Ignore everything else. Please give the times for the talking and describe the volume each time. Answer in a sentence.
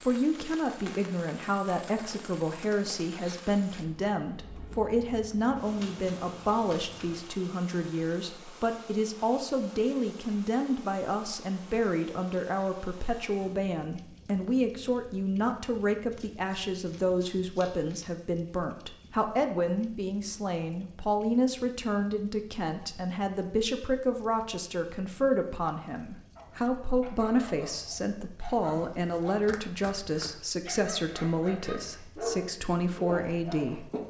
The talking can be heard from 0.0 to 33.9 s, at a steady volume.